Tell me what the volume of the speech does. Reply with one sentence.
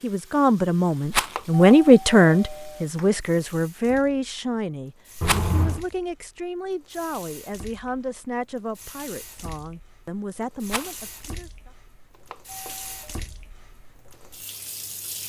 The volume of the speech goes down.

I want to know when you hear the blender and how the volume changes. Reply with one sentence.
You can't hear the blender here.